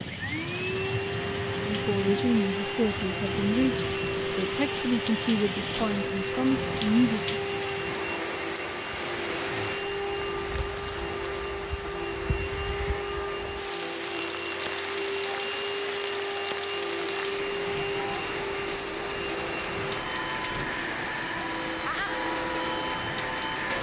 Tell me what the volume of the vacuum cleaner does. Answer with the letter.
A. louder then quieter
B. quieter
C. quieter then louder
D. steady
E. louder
D.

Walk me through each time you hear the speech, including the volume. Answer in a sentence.
The speech can be heard from 1.6 to 7.2 s, at a steady volume.